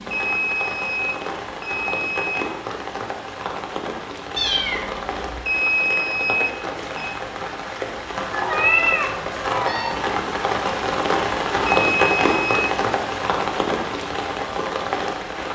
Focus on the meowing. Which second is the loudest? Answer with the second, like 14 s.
9 s.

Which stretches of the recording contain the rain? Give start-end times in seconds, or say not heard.
0.0-15.5.